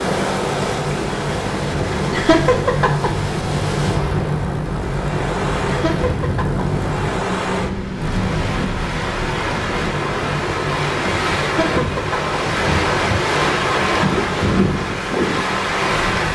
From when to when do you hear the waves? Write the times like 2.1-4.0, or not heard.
0.0-16.3.